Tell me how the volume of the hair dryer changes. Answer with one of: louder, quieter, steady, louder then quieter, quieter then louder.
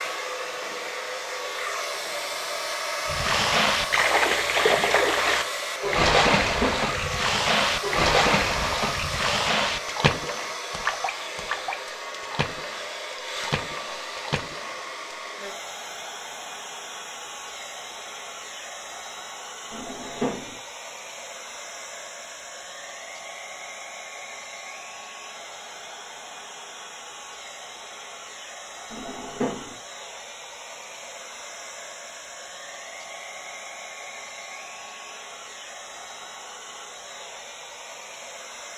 quieter.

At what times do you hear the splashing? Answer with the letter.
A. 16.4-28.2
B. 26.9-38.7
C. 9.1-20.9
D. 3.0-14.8
D.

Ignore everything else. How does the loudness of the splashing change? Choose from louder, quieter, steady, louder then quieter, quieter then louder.
quieter.